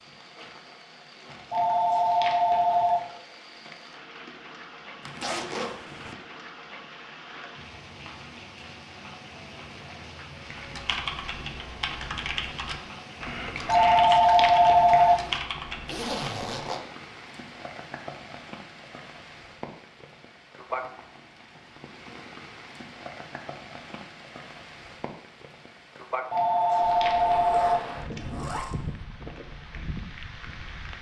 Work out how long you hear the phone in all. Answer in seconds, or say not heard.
5 s.